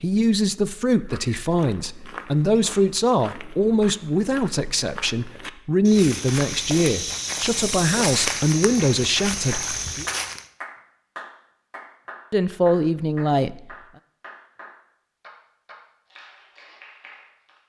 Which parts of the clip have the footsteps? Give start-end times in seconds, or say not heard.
0.8-10.4.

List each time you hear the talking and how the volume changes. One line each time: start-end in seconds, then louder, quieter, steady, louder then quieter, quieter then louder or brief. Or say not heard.
0.0-10.1 steady
12.3-13.7 brief.